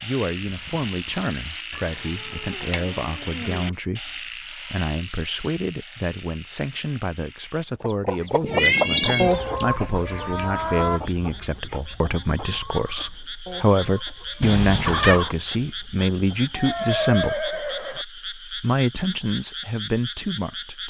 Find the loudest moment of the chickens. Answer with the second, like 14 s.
9 s.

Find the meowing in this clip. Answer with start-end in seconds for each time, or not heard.
1.7-3.8, 8.4-9.4, 14.4-15.3.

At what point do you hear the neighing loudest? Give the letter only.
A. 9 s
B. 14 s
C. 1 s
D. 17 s
D.